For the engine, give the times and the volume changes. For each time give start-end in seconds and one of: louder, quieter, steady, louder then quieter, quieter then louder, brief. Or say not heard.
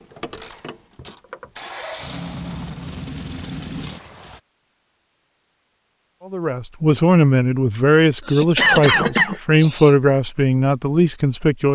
0.0-4.4 louder.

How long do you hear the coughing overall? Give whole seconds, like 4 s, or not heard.
2 s.